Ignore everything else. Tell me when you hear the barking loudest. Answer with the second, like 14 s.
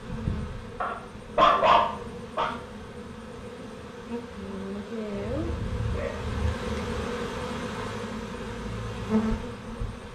2 s.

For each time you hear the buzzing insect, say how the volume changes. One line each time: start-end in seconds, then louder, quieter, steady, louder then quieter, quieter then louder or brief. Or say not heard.
0.0-10.1 louder.